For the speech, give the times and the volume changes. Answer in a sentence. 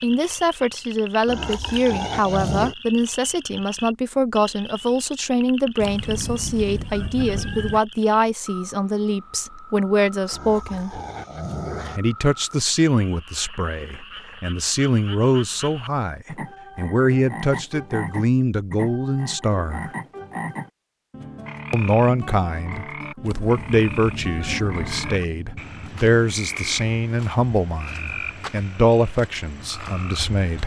You can hear the speech from 0.0 to 11.0 s, at a steady volume; from 11.9 to 19.9 s, at a steady volume; and from 21.7 to 30.6 s, at a steady volume.